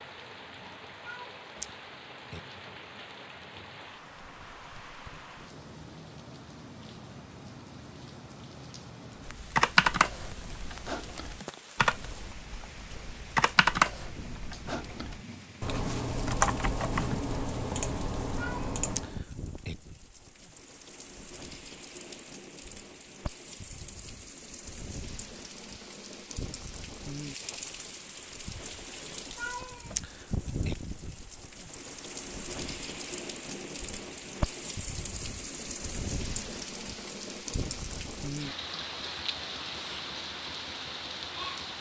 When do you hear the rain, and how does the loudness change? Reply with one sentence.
The rain can be heard from 0.0 to 41.7 s, getting louder.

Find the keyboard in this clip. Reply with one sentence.
You can hear the keyboard from 9.2 to 19.2 s.